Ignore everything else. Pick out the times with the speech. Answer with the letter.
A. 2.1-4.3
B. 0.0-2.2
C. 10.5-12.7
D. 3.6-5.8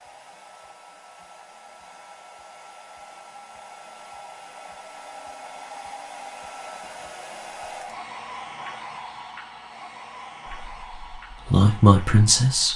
C.